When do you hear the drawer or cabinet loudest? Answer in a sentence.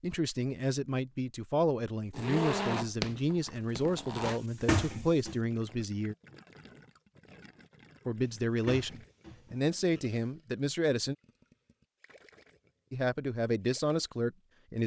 The loudest moment of the drawer or cabinet is at 5 seconds.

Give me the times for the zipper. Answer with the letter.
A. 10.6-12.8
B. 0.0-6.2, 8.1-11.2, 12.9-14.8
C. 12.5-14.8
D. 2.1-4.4
D.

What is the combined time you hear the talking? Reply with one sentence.
The talking can be heard for 11 seconds in total.